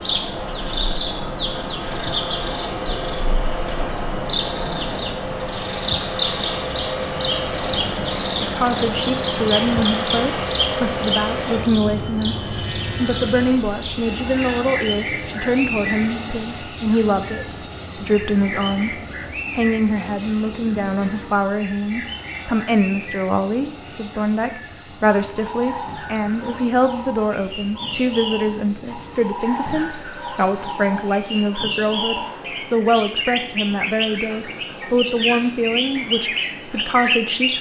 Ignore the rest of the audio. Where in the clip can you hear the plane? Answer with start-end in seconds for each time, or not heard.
0.0-37.5.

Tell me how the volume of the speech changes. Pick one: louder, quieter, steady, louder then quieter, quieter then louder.
steady.